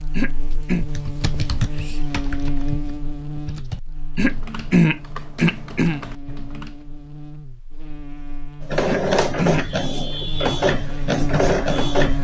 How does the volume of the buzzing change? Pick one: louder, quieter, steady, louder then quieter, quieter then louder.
quieter then louder.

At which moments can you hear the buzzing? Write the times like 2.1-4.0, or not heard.
0.0-12.1.